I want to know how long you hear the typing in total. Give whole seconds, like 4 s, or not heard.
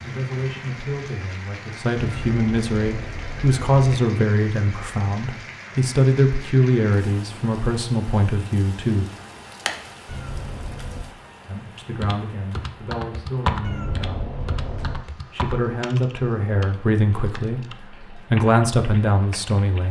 8 s.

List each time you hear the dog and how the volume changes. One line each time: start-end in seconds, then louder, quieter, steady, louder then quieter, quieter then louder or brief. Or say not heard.
not heard.